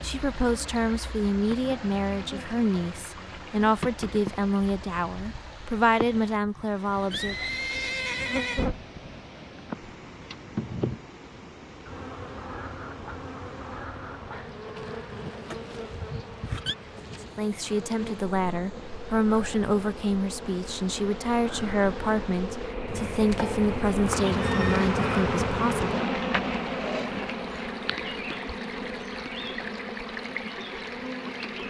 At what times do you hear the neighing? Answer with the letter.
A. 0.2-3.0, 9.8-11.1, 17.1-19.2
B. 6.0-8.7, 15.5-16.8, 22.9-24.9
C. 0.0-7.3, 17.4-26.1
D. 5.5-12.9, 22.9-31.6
B.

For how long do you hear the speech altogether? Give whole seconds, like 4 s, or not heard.
16 s.